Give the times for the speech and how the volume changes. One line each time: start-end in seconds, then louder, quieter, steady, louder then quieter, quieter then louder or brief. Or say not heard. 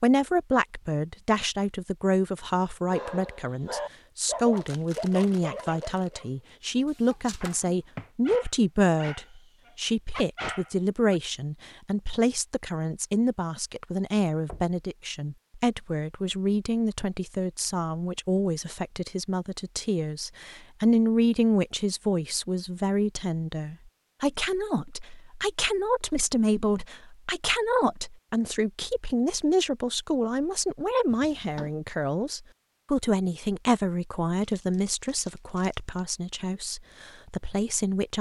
0.0-38.1 steady.